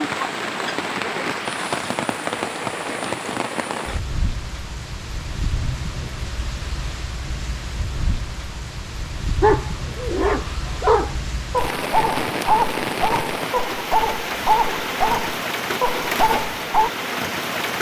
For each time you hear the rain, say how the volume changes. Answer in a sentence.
The rain can be heard from 0.0 to 17.7 s, getting quieter then louder.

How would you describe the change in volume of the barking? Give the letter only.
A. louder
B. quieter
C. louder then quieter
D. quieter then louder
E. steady
E.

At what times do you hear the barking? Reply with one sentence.
The barking can be heard from 9.4 to 16.9 s.